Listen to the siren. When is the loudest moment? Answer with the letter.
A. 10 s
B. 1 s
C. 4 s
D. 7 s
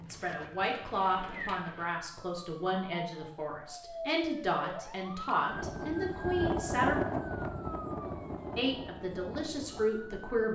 D.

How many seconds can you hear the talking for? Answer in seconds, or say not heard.
9 s.